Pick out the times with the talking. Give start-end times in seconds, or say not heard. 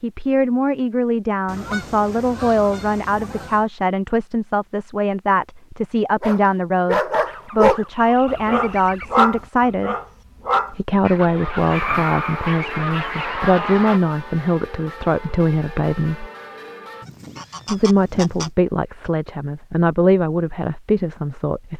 0.0-9.9, 10.7-16.3, 17.6-21.7.